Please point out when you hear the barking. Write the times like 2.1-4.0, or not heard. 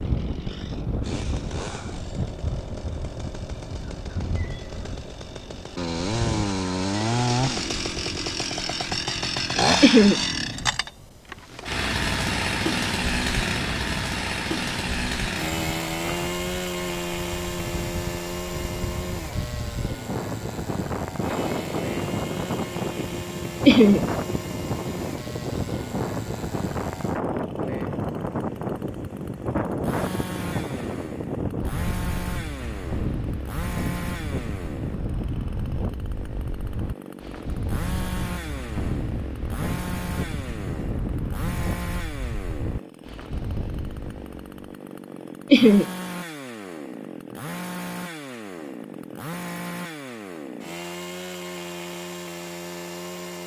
not heard.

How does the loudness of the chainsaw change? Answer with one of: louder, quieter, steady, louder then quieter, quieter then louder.
quieter.